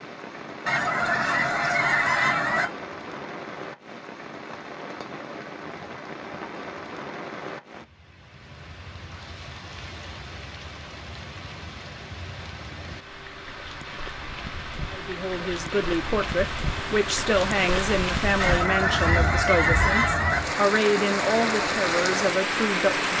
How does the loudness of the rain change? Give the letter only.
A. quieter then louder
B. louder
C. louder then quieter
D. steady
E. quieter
B.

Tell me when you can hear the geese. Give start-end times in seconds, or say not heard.
0.7-2.6, 18.4-20.4.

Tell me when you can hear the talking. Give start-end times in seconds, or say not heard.
14.9-23.1.